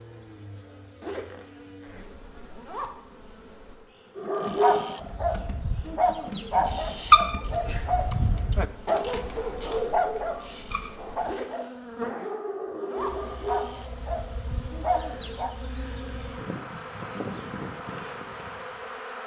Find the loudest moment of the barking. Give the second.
7 s.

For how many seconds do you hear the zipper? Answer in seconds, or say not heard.
4 s.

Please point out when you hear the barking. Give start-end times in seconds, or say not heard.
4.2-15.6.